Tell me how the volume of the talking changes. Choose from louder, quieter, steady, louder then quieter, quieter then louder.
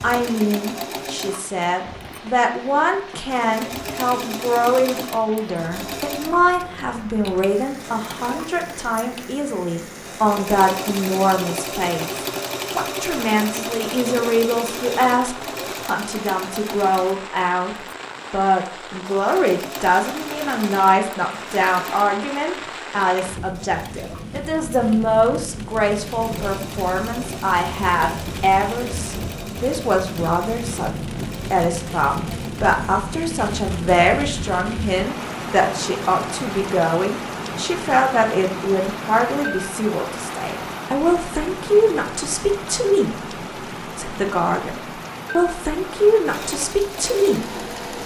steady.